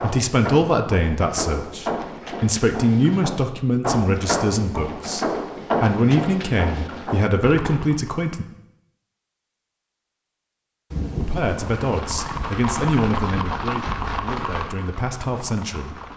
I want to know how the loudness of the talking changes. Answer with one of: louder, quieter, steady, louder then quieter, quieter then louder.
quieter.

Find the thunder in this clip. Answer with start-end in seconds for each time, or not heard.
10.9-12.0.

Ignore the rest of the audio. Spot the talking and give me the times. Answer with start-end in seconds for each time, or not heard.
0.0-8.4, 11.2-16.1.